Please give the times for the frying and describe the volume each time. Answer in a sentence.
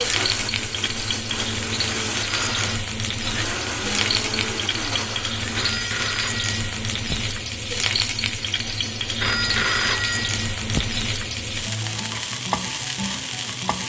The frying can be heard from 0.0 to 13.8 s, at a steady volume.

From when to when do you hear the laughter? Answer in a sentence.
The laughter can't be heard in this clip.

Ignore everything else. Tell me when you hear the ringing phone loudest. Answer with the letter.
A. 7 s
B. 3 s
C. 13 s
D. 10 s
D.